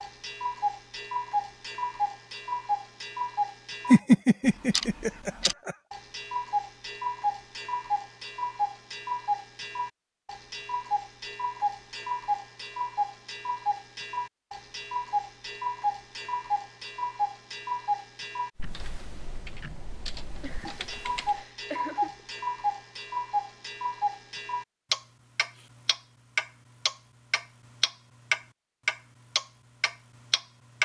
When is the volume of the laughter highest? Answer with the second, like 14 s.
4 s.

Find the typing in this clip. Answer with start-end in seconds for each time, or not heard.
18.6-21.4.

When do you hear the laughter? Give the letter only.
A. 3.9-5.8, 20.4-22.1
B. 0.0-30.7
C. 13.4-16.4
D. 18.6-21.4
A.